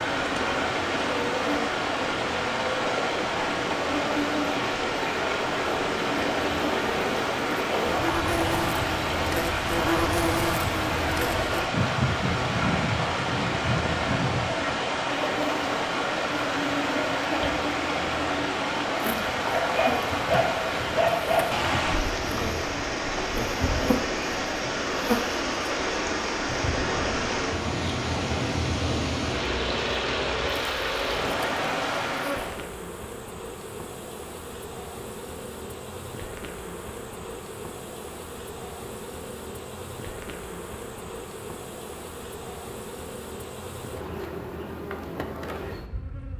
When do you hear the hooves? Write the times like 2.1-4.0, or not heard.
not heard.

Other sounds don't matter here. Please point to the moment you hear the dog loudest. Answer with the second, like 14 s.
21 s.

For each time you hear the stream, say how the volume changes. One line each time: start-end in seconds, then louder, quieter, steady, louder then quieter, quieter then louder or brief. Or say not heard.
0.0-32.6 steady.